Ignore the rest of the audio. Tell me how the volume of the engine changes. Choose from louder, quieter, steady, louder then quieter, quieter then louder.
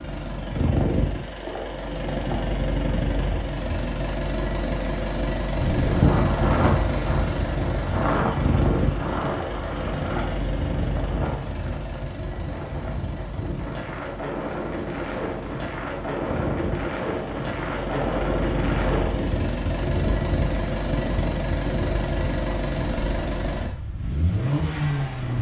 quieter then louder.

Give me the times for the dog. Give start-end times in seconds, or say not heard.
not heard.